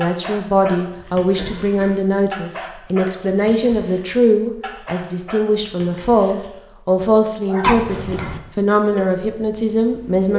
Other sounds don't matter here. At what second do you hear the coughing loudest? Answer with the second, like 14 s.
8 s.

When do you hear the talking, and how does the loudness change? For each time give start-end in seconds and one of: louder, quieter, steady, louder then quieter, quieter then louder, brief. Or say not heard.
0.0-10.3 steady.